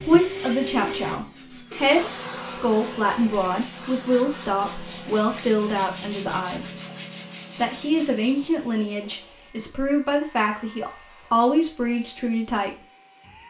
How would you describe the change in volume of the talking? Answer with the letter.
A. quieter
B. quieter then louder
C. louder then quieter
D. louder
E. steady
E.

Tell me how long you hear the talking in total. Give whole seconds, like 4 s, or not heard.
12 s.